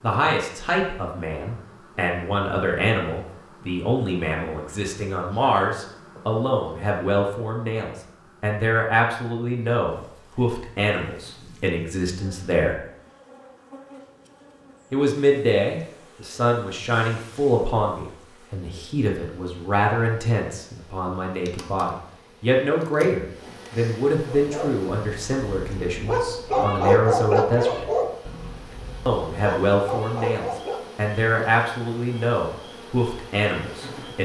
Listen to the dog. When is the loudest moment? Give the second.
27 s.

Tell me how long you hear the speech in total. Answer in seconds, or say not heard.
31 s.